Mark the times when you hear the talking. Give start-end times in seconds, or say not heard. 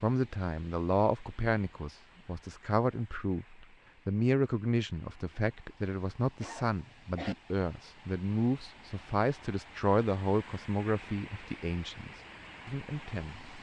0.0-13.4.